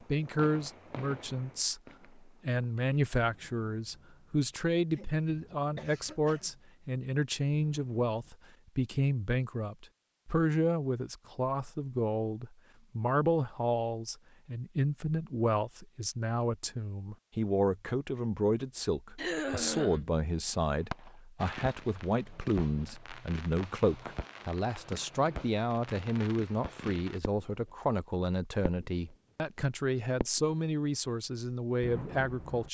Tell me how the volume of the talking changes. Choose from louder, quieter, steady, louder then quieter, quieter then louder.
steady.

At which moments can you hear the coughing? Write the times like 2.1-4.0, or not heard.
4.9-6.5, 19.1-20.1.